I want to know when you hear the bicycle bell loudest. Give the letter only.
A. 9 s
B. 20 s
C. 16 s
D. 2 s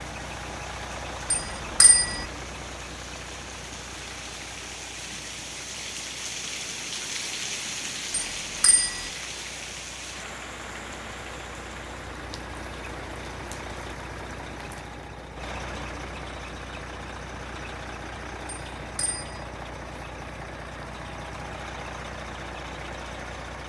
D.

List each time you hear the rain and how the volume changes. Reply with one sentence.
The rain can be heard from 0.0 to 14.9 s, getting louder then quieter.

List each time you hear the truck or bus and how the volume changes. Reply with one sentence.
You can hear the truck or bus from 0.0 to 23.6 s, getting quieter then louder.